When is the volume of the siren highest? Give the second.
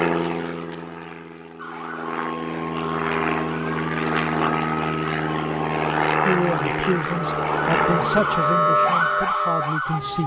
9 s.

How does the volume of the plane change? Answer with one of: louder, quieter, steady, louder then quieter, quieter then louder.
louder.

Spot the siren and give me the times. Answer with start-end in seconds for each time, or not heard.
1.6-10.2.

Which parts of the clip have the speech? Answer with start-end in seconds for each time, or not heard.
6.2-10.2.